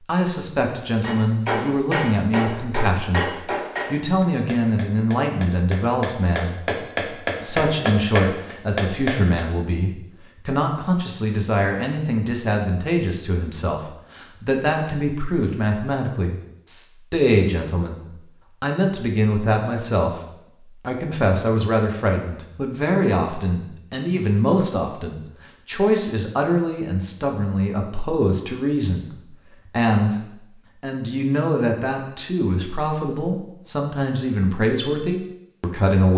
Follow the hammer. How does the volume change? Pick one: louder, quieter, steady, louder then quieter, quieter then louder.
quieter then louder.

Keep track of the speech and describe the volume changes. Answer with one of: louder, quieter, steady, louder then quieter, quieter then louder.
steady.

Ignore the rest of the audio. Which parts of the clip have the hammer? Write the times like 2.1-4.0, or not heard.
1.0-9.4.